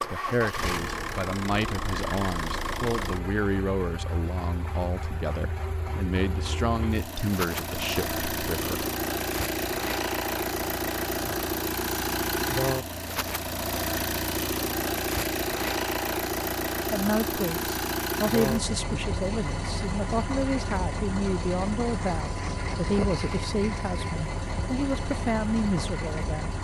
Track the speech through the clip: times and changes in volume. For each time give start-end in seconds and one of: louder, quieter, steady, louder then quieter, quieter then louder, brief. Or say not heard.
0.0-8.8 steady
16.9-26.5 steady.